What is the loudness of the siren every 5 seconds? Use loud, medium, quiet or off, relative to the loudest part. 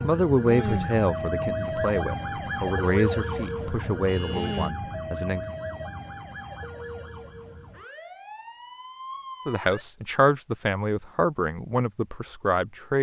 loud, medium, off.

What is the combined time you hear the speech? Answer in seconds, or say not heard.
9 s.